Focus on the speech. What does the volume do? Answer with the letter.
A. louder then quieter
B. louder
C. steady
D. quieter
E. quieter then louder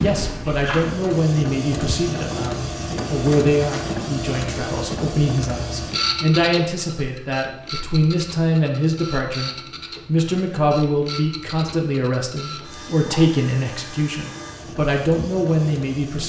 C.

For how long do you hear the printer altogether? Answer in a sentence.
You can hear the printer for 16 seconds altogether.